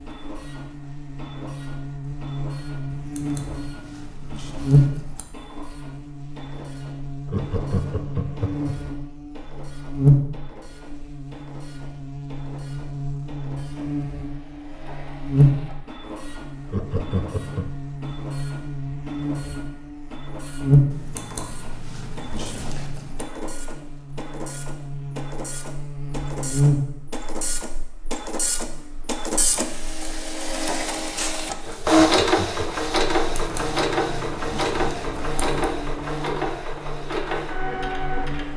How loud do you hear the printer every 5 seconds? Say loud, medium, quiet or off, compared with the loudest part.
quiet, quiet, quiet, quiet, quiet, medium, loud, medium.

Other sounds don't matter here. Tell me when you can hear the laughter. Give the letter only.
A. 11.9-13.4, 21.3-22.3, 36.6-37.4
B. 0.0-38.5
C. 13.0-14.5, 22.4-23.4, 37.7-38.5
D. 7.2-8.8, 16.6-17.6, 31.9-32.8
D.